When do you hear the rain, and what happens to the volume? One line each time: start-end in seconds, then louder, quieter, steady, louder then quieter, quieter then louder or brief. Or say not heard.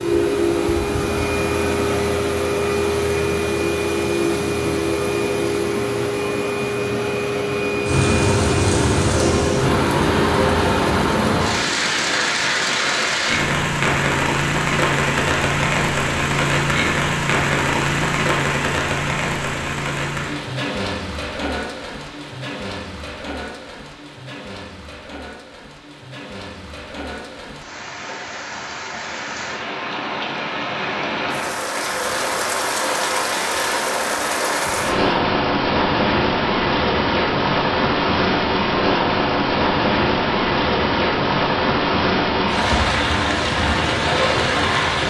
7.8-45.0 quieter then louder.